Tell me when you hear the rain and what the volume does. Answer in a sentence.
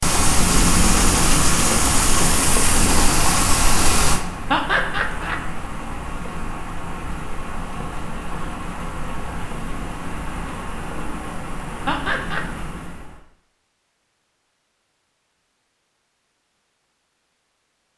The rain can be heard from 0.0 to 13.2 s, getting quieter.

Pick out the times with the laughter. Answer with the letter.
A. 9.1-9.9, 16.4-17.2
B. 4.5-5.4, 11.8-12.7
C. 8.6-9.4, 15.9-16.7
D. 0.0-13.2
B.